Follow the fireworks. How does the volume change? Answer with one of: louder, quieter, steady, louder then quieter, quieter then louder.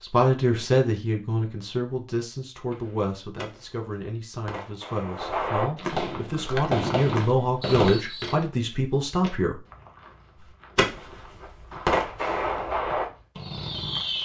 louder.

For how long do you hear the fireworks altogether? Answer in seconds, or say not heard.
9 s.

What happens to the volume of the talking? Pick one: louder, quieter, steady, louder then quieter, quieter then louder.
quieter then louder.